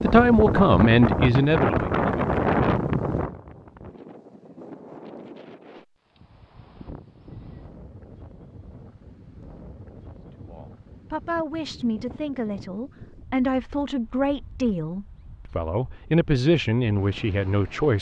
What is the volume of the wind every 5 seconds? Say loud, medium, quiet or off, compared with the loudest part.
loud, quiet, quiet, quiet.